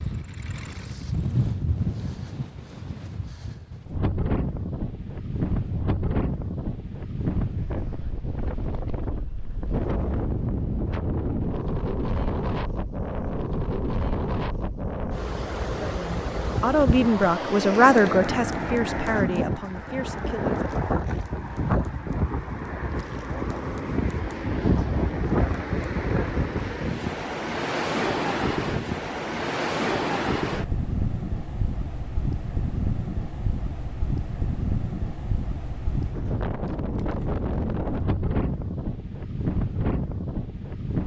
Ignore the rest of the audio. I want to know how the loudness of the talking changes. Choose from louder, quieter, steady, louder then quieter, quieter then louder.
quieter.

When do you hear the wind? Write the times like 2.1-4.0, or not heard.
0.0-41.0.